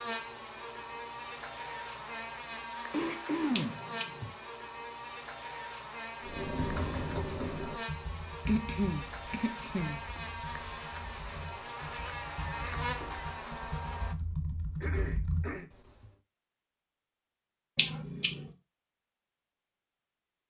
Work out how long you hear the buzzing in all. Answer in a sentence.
You can hear the buzzing for 14 seconds altogether.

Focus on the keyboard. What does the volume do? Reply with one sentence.
The loudness of the keyboard goes down, then up.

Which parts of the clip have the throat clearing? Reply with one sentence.
The throat clearing can be heard from 2.9 to 4.3 s, from 8.4 to 10.2 s and from 14.8 to 15.7 s.